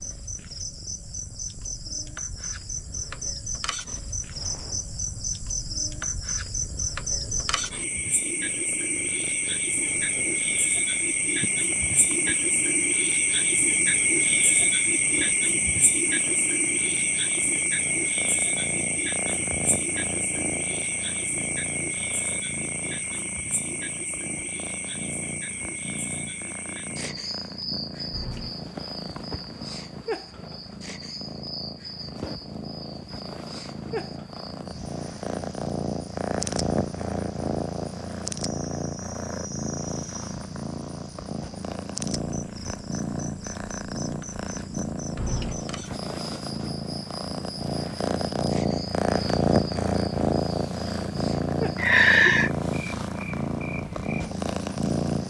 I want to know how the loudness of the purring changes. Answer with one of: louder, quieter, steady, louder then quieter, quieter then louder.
louder.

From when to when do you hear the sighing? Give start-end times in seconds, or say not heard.
51.8-52.5.